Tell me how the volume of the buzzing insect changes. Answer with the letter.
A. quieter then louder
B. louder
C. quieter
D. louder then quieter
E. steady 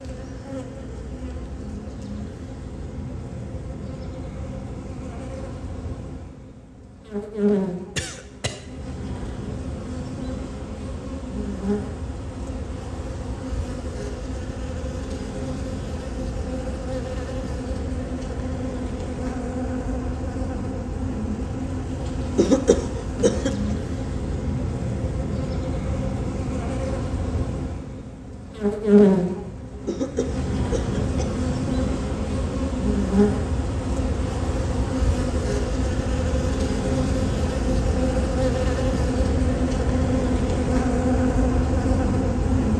B.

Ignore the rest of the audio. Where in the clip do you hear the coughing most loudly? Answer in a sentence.
The loudest moment of the coughing is at 23 seconds.